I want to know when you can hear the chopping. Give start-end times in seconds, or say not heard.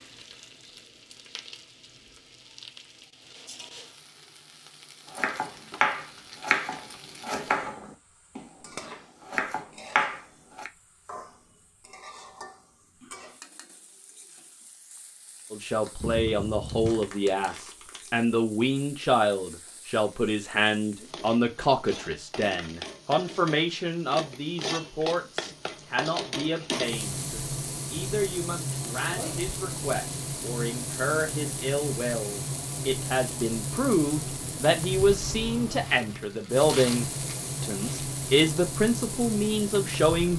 5.1-8.4, 9.2-10.7.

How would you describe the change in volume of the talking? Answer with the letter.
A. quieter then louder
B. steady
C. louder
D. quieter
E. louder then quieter
A.